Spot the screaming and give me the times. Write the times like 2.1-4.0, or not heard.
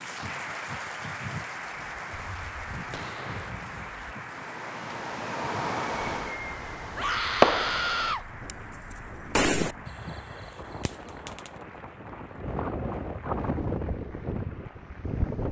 7.0-8.2.